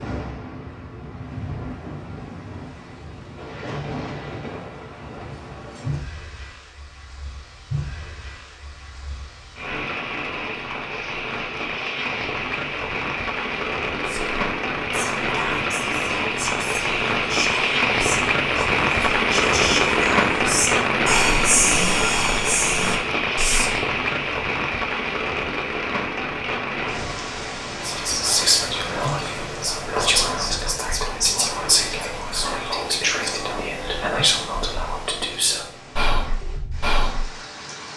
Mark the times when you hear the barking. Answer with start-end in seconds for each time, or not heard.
not heard.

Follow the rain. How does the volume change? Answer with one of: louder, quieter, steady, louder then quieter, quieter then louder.
louder then quieter.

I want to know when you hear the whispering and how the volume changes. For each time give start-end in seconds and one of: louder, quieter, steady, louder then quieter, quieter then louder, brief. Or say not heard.
14.1-23.7 louder
27.8-37.2 steady.